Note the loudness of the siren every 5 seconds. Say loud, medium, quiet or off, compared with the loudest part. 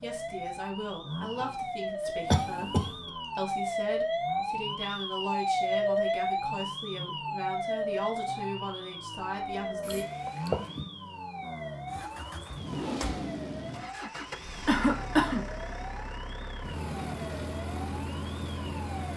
loud, loud, medium, quiet.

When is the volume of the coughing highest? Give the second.
15 s.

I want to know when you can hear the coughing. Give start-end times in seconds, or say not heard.
2.3-3.0, 9.8-10.8, 14.7-15.4.